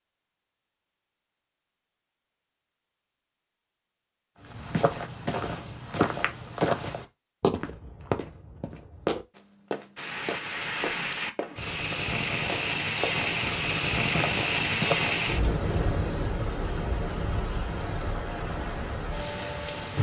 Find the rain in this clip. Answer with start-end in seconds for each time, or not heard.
9.9-19.9.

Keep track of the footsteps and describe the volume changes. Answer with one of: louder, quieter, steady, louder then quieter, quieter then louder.
quieter.